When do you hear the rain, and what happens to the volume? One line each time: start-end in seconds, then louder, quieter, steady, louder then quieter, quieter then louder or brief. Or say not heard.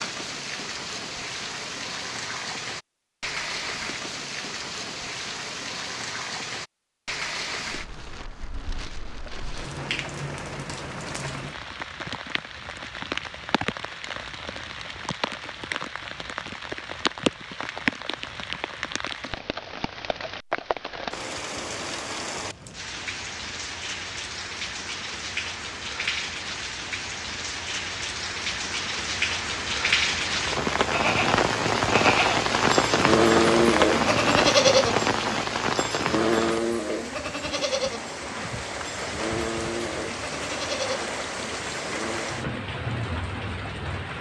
0.0-44.1 louder then quieter.